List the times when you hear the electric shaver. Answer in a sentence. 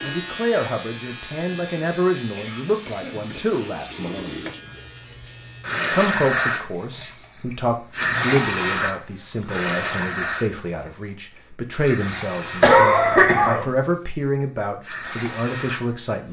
The electric shaver can be heard from 0.0 to 5.7 s.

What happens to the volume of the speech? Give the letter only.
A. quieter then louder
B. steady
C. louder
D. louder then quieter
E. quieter
B.